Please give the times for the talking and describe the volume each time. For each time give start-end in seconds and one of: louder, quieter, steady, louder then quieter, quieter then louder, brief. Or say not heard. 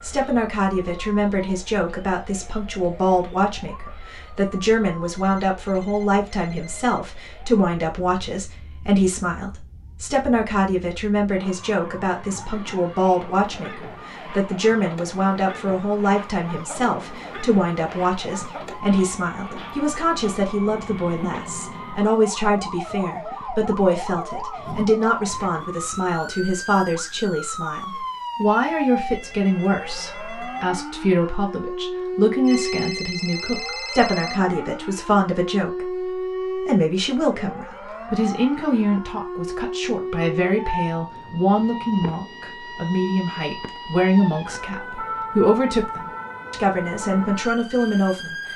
0.0-48.4 steady.